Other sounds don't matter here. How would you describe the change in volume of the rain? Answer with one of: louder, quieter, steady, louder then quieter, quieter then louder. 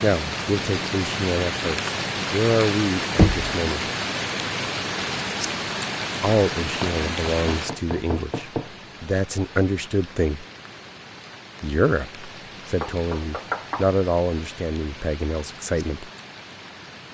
quieter.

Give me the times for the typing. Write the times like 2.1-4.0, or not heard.
not heard.